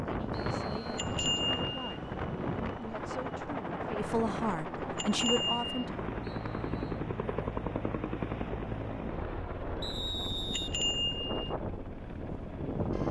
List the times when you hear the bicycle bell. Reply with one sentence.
You can hear the bicycle bell from 0.9 to 1.8 s, from 5.0 to 5.7 s and from 10.5 to 11.6 s.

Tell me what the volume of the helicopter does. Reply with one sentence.
The loudness of the helicopter goes up, then down.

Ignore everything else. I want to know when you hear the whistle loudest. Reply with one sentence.
The volume of the whistle peaks at 10 seconds.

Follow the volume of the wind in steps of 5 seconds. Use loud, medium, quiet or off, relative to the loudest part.
loud, medium, loud.